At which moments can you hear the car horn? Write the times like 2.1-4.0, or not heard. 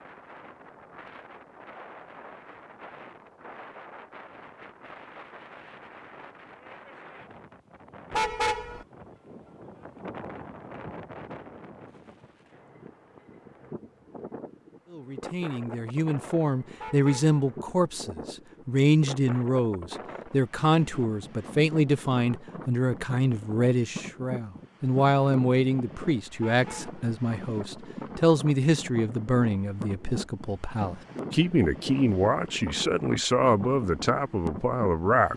8.1-8.8, 16.8-17.4, 26.4-27.1.